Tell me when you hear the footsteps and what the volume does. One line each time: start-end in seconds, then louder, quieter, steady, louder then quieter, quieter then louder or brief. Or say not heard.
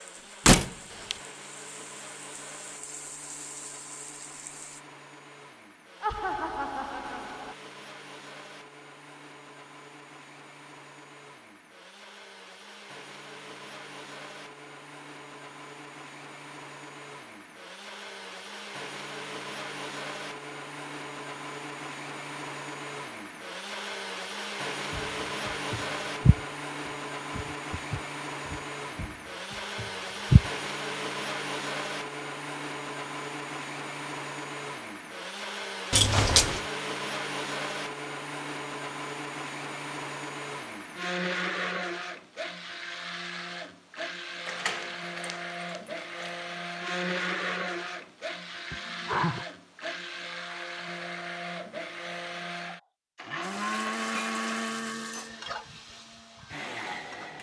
24.9-30.5 louder then quieter.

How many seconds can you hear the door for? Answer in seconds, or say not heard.
3 s.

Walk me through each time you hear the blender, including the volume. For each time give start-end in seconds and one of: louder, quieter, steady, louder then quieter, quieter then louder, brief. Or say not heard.
0.0-57.3 louder.